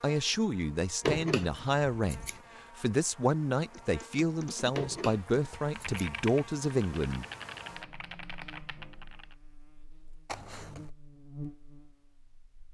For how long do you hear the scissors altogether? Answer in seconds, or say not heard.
3 s.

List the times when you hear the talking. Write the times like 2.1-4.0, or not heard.
0.0-7.2.